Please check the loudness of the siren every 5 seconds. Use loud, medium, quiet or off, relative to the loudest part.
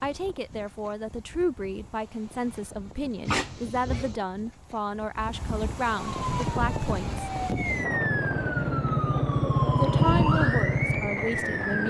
off, loud, loud.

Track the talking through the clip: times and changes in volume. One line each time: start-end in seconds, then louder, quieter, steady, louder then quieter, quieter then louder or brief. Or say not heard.
0.0-7.2 steady
9.8-11.8 brief.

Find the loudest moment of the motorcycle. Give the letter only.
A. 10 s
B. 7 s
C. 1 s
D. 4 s
A.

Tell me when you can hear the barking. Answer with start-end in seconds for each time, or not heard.
3.2-4.2.